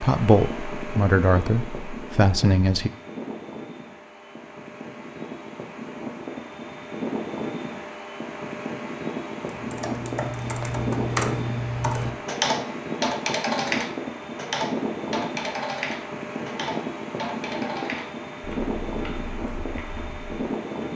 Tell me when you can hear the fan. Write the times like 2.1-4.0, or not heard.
0.0-20.9.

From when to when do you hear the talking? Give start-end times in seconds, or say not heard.
0.0-2.9.